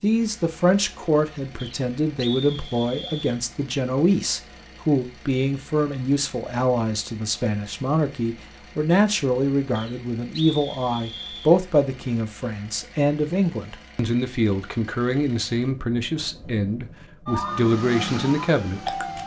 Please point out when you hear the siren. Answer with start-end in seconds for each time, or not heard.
17.2-19.2.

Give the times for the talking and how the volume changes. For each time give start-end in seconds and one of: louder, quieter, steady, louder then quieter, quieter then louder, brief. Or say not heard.
0.0-18.9 steady.